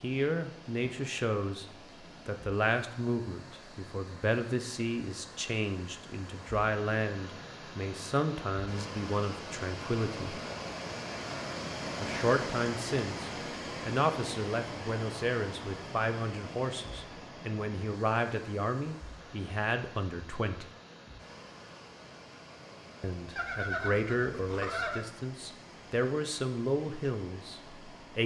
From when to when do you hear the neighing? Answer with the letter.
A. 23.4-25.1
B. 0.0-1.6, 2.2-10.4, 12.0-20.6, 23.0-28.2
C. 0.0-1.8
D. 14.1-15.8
A.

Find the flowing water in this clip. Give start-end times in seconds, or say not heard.
0.0-28.2.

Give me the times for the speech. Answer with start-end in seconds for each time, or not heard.
0.0-1.6, 2.2-10.4, 12.0-20.6, 23.0-28.2.